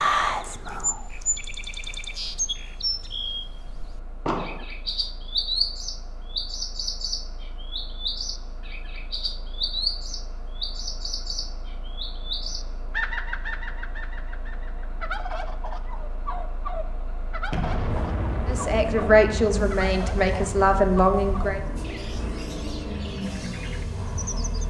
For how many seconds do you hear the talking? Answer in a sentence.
The talking can be heard for 3 seconds in total.